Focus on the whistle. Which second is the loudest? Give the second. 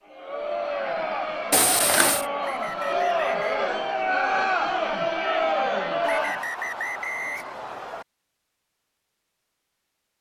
7 s.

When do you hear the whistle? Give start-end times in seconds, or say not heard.
2.4-3.5, 6.0-8.1.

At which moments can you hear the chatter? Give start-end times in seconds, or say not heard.
0.0-6.5.